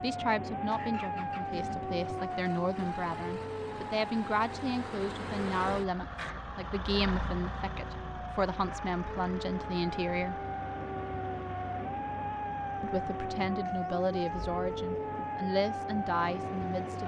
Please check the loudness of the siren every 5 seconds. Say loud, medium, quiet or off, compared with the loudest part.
loud, medium, loud, loud.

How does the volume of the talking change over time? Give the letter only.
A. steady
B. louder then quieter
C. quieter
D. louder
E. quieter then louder
A.